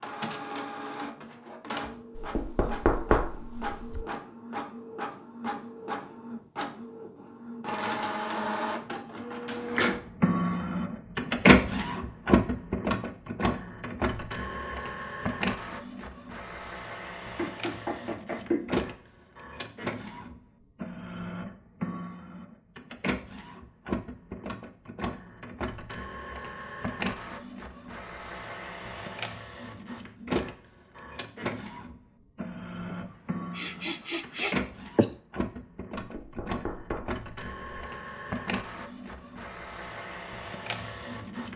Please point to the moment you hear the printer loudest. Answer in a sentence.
The volume of the printer peaks at 12 seconds.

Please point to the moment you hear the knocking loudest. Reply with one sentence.
The volume of the knocking peaks at 3 seconds.